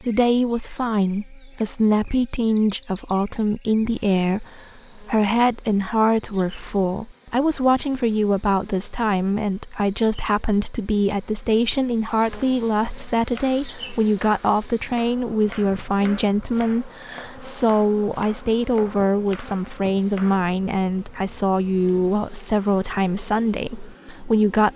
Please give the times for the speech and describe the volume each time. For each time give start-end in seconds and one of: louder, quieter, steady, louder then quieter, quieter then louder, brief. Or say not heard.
0.0-24.7 steady.